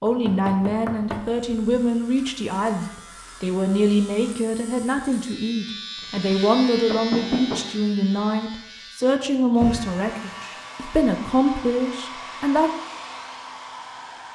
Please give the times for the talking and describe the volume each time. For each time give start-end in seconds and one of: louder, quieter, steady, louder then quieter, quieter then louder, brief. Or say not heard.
0.0-12.7 steady.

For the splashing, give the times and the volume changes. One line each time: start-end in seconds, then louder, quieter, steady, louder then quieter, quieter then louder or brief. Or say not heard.
not heard.